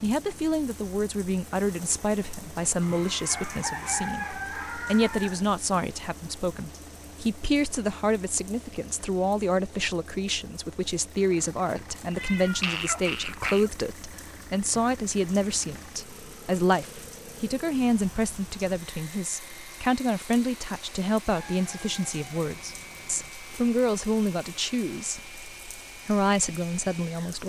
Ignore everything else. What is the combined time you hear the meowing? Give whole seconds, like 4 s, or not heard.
2 s.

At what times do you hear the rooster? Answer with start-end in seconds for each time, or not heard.
2.8-5.5, 21.3-23.3.